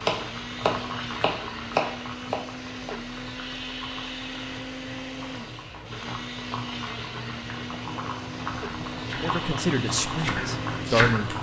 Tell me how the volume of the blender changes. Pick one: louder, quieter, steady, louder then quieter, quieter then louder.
steady.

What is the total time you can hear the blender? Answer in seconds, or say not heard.
11 s.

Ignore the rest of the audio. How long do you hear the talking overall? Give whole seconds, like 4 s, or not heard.
2 s.